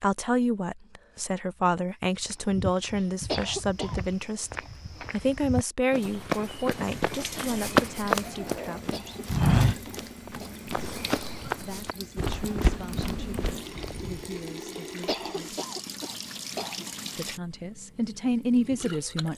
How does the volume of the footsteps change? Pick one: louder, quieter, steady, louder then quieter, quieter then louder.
louder then quieter.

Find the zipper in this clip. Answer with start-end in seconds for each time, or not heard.
8.2-8.9.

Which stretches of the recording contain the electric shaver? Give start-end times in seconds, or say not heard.
not heard.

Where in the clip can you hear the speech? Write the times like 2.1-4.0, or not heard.
0.0-9.2, 11.5-15.6, 17.1-19.3.